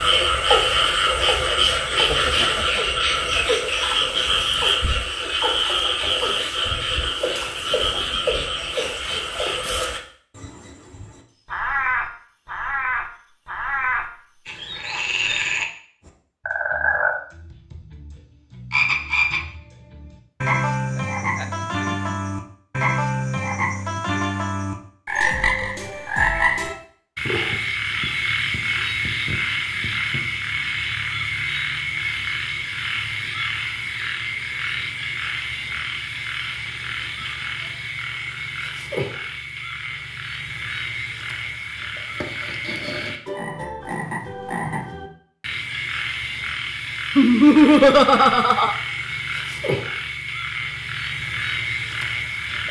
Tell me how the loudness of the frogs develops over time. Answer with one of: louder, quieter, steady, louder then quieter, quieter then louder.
quieter.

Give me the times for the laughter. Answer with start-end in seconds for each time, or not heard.
1.9-2.8, 20.9-22.1, 47.1-48.8.